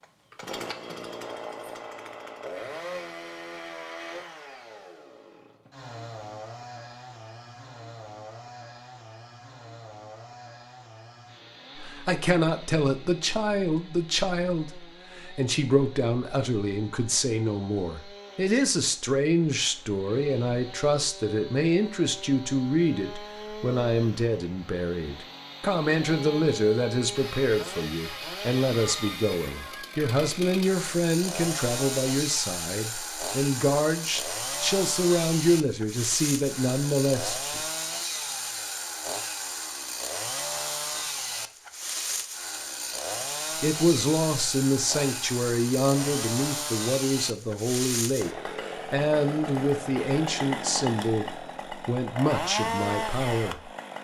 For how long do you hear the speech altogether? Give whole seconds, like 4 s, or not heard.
36 s.